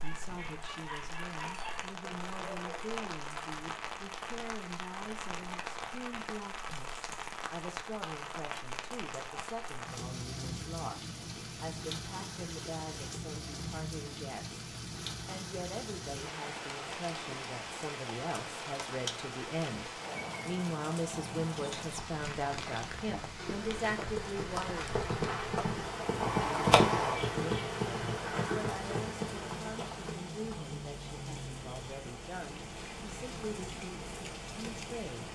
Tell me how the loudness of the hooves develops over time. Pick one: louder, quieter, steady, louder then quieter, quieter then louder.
louder then quieter.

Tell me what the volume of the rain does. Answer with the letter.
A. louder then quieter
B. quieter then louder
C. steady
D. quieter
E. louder
C.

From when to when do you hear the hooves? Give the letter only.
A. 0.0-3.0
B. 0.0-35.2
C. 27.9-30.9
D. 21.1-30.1
D.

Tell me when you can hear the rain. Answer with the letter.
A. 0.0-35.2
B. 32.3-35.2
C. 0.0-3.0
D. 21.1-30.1
A.